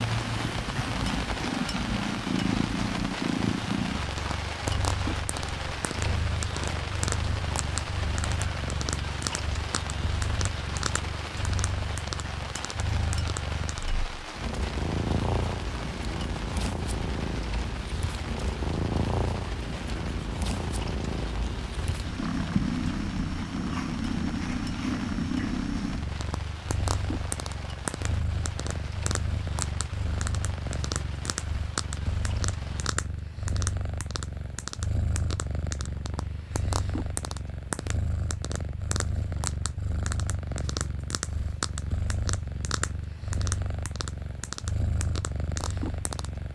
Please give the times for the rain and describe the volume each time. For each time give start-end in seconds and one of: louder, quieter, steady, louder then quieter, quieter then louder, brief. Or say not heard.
0.0-33.0 quieter.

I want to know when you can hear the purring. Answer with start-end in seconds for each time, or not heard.
0.0-46.4.